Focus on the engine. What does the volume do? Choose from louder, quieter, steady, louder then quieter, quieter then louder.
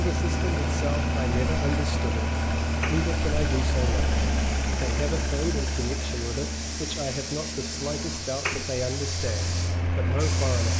quieter.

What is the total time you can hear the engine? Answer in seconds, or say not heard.
11 s.